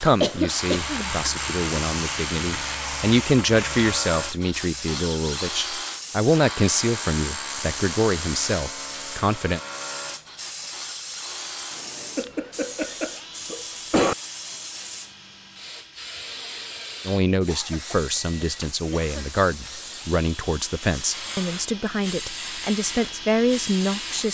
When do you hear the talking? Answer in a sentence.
The talking can be heard from 0.0 to 9.6 s and from 17.1 to 24.3 s.